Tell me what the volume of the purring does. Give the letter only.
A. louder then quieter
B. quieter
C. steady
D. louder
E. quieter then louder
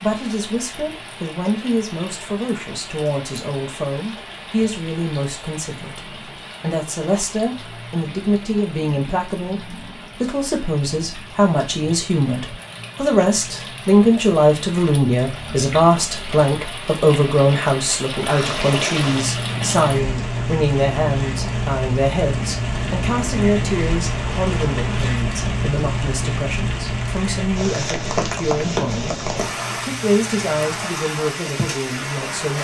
B.